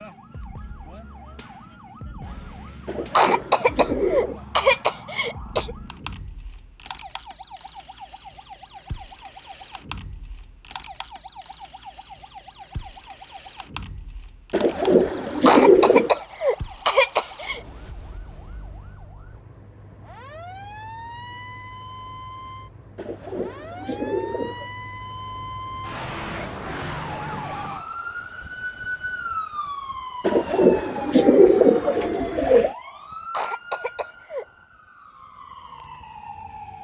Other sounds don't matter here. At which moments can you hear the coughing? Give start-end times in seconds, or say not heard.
3.1-5.8, 15.4-17.6, 33.3-34.5.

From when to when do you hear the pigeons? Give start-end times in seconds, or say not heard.
2.9-4.4, 14.5-16.2, 22.9-24.7, 30.2-32.7.